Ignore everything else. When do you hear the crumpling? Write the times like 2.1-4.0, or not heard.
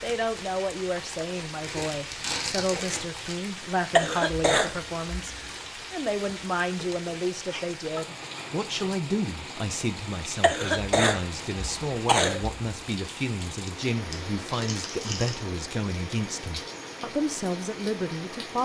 1.6-3.2, 14.1-15.3.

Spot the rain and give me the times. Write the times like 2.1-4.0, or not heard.
0.0-18.5.